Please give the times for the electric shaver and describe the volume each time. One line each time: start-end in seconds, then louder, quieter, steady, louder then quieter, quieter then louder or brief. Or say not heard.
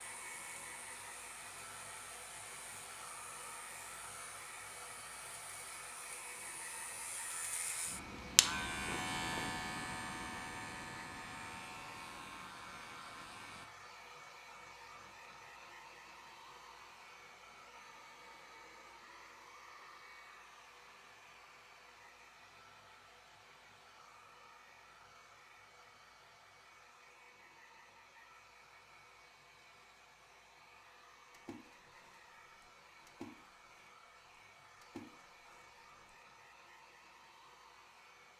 0.0-13.7 louder then quieter.